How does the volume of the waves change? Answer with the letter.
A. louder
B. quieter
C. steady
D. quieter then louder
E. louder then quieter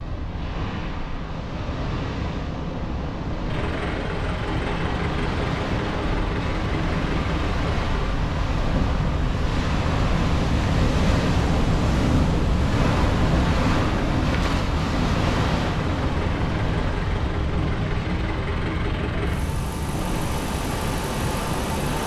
E.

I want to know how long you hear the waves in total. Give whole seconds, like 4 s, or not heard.
22 s.